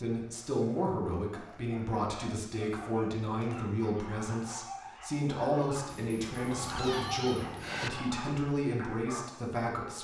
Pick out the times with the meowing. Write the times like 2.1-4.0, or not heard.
5.8-7.9.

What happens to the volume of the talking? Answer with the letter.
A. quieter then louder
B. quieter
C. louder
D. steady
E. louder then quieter
D.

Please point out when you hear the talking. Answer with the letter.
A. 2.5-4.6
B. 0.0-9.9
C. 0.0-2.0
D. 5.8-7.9
B.